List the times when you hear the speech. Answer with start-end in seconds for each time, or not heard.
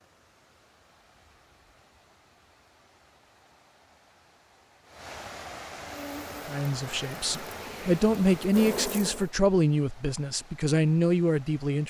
6.5-11.8.